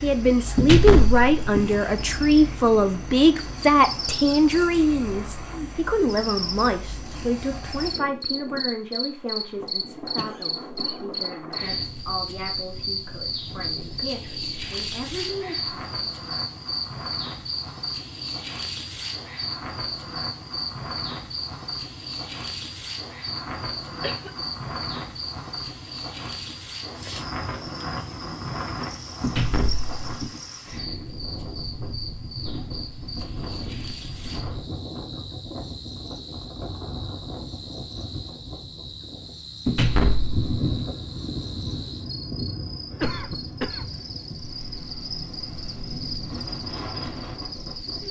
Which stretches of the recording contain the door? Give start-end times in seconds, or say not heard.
0.6-1.8, 29.2-30.3, 39.6-40.9.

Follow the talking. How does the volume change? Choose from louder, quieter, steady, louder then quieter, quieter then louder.
quieter.